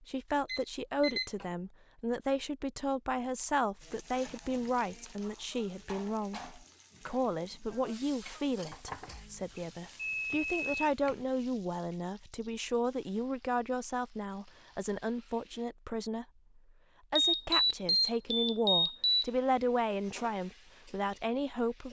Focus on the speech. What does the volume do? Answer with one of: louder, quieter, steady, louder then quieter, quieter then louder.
steady.